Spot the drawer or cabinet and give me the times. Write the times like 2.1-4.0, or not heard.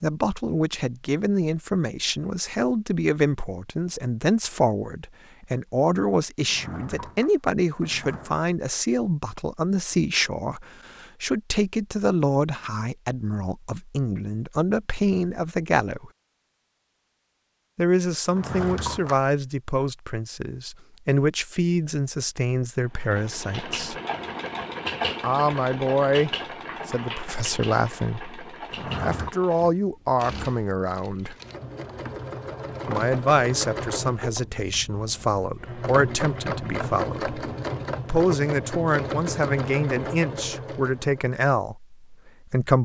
6.4-8.3, 18.3-19.2, 28.7-29.4.